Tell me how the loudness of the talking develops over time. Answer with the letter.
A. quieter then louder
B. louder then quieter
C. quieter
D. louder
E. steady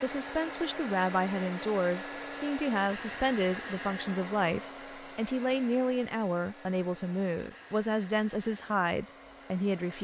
E.